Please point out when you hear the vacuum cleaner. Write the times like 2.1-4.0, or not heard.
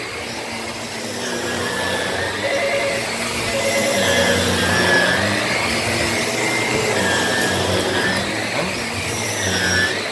0.0-10.0.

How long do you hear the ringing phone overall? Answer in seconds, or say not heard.
2 s.